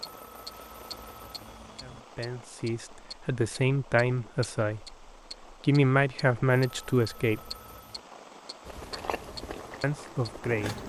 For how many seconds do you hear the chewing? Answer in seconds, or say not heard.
2 s.